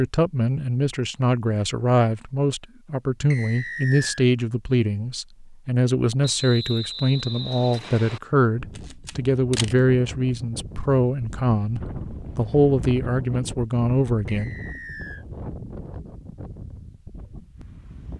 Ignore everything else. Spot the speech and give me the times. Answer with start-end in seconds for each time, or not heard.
0.0-14.6.